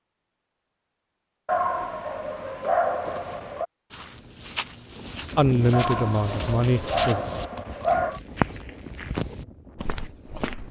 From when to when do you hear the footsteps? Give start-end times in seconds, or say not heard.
3.0-10.6.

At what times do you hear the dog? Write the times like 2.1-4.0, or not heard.
1.4-3.6, 5.7-8.2.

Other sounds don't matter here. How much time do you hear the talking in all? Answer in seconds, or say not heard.
2 s.